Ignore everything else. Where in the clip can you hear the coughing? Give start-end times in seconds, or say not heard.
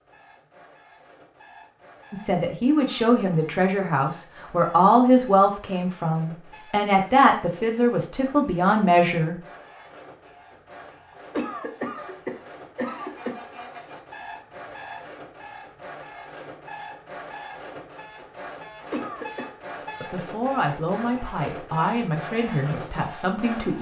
2.8-3.4, 11.3-13.3, 18.9-19.5.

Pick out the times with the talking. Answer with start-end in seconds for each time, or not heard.
2.1-9.3, 20.0-23.7.